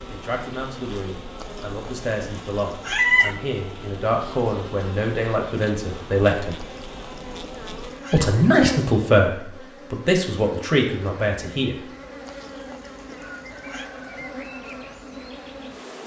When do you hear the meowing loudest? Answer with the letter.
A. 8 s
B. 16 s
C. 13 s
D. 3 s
D.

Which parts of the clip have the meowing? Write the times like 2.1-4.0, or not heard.
1.4-3.4, 6.5-8.2, 12.2-13.9.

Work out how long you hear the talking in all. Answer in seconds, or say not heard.
10 s.